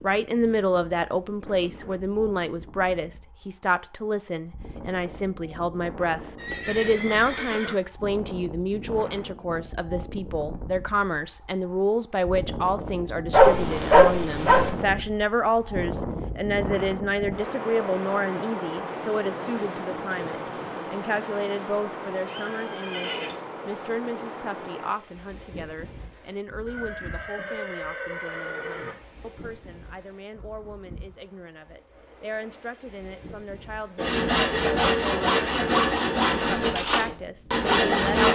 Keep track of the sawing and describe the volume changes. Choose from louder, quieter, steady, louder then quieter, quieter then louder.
steady.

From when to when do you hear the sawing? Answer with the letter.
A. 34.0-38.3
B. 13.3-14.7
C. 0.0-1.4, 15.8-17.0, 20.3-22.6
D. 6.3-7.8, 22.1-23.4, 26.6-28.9
A.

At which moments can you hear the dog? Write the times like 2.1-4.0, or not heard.
13.3-14.7.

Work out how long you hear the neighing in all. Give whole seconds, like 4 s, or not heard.
5 s.